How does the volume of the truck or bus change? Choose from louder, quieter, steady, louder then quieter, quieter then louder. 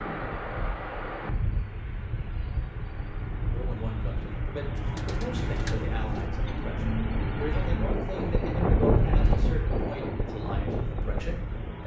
louder then quieter.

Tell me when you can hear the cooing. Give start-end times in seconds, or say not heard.
4.8-6.3.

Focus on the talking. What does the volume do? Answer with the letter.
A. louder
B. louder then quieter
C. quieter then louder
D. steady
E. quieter
D.